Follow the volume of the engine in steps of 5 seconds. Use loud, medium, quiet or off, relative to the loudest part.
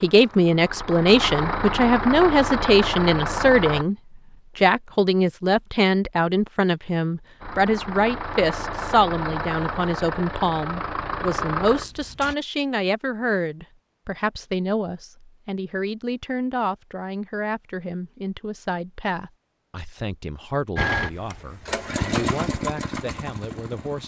loud, loud, loud, off, loud.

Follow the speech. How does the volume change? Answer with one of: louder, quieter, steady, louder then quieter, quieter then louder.
quieter.